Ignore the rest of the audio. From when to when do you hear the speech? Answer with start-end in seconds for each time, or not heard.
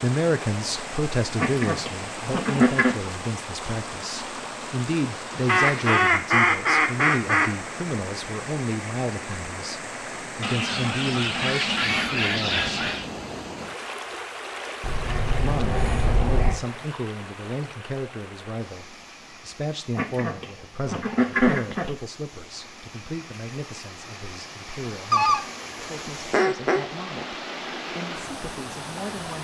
0.0-12.9, 15.3-29.4.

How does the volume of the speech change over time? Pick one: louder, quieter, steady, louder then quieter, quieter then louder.
quieter.